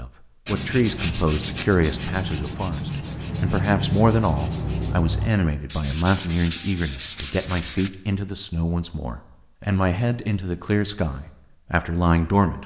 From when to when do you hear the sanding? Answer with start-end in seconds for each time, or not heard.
0.5-7.9.